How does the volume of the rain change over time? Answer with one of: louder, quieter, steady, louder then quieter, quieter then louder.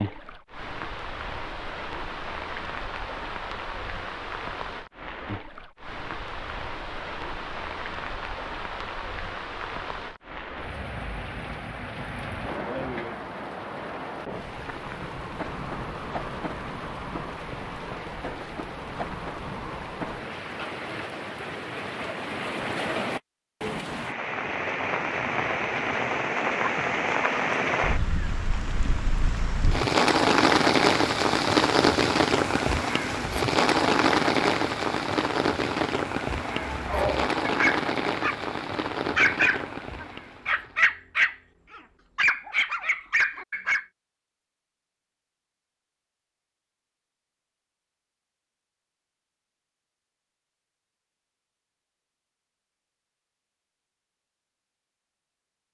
louder.